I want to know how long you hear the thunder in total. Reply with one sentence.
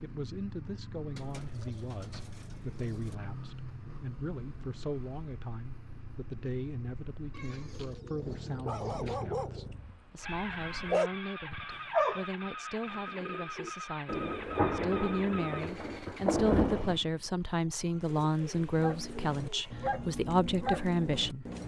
The thunder can be heard for 3 seconds in total.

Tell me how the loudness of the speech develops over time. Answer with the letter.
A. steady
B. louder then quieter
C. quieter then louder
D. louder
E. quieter
D.